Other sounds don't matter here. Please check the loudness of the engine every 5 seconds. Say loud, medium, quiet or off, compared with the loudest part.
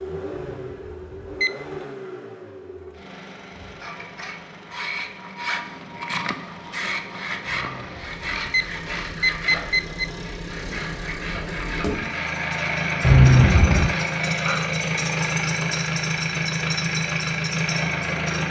quiet, quiet, loud, loud.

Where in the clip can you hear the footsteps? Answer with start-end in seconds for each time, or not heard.
not heard.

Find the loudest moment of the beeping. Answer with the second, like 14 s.
13 s.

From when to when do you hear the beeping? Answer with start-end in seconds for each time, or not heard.
0.3-1.5, 7.5-10.1, 13.0-13.9.